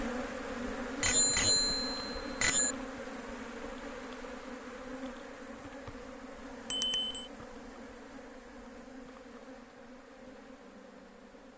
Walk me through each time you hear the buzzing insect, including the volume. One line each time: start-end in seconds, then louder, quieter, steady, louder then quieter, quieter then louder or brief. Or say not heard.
0.0-11.5 quieter.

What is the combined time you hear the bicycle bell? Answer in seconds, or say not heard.
2 s.